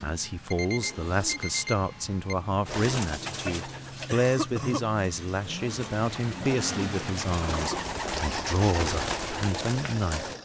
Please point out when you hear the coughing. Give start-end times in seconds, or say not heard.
4.0-5.3.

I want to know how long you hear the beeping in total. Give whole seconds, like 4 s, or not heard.
2 s.